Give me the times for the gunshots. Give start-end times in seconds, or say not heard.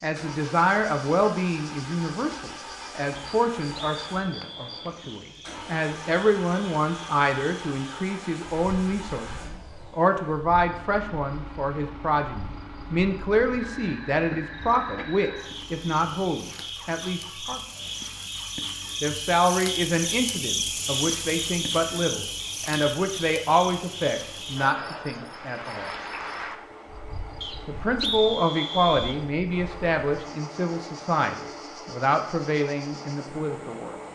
not heard.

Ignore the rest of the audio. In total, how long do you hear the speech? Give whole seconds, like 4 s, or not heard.
31 s.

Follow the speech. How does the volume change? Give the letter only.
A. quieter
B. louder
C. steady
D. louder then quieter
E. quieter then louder
C.